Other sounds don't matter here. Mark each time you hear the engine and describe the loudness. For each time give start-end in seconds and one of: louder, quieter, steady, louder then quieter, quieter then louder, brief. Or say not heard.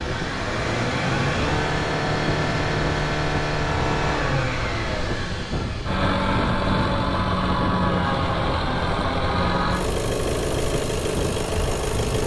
0.0-12.2 steady.